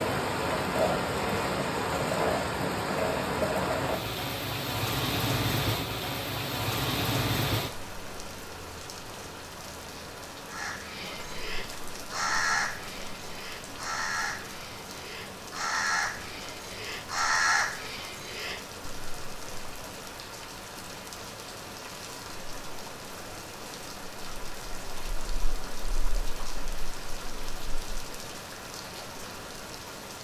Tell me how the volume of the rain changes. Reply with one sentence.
The volume of the rain goes down.